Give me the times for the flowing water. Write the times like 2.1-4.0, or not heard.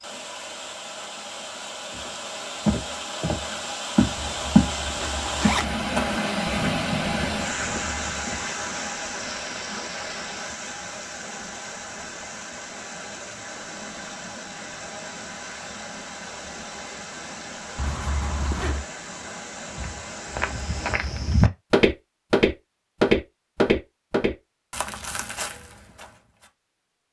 0.0-20.9.